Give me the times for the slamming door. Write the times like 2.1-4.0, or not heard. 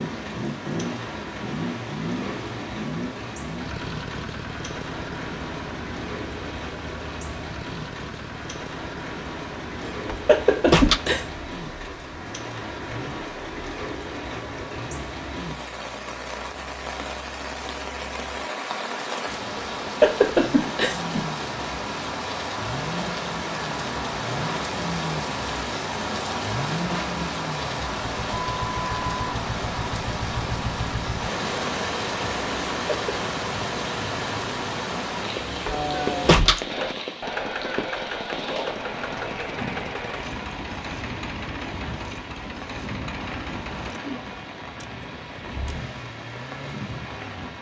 10.1-11.0, 35.6-36.6.